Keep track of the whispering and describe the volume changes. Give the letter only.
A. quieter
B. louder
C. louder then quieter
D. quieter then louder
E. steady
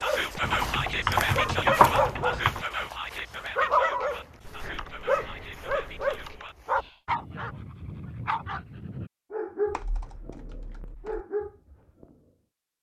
A.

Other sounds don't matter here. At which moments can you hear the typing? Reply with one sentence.
The typing can be heard from 0.4 to 2.6 s, from 4.4 to 6.5 s and from 9.7 to 11.2 s.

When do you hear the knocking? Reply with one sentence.
The knocking can't be heard in this clip.